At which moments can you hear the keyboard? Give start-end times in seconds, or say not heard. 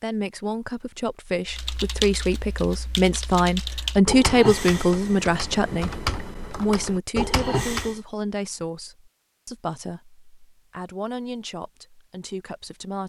1.4-8.0.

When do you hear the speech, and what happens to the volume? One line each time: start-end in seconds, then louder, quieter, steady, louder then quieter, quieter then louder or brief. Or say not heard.
0.0-13.0 louder then quieter.